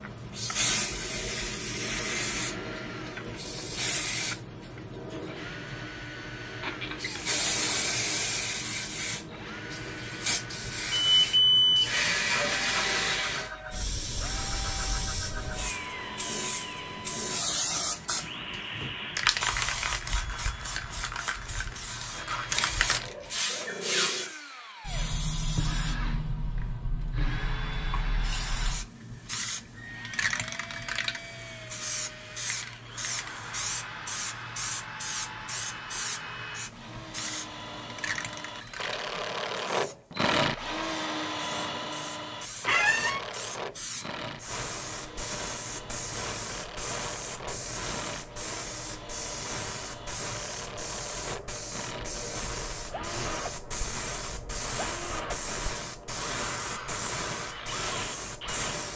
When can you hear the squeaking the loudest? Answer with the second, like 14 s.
43 s.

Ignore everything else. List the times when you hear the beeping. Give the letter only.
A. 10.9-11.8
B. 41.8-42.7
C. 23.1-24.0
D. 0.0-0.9
A.